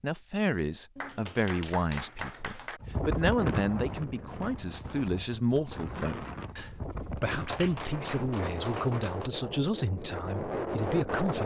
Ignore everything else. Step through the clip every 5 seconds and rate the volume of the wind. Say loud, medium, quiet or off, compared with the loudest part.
loud, medium, loud.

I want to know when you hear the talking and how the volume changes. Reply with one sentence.
You can hear the talking from 0.0 to 11.4 s, at a steady volume.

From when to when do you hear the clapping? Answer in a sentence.
The clapping can be heard from 0.9 to 2.8 s and from 7.2 to 9.3 s.